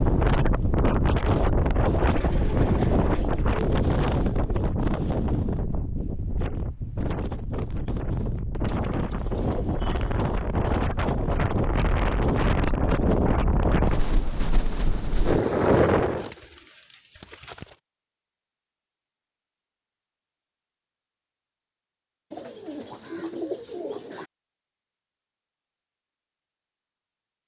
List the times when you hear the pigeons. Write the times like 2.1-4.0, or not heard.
2.0-4.5, 8.7-10.6, 16.1-17.8, 22.3-24.2.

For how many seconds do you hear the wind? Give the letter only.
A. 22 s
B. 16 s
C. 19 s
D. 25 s
B.